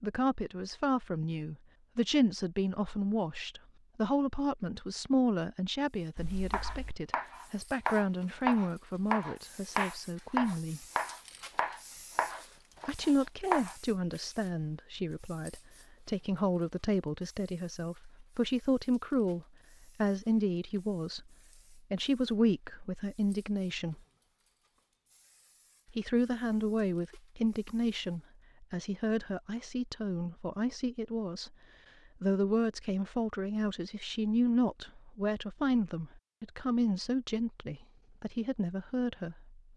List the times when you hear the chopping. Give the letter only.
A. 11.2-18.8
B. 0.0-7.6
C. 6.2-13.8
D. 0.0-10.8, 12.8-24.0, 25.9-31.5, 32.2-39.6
C.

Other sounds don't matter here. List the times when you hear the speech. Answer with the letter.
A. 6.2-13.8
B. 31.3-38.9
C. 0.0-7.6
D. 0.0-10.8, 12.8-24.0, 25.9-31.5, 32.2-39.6
D.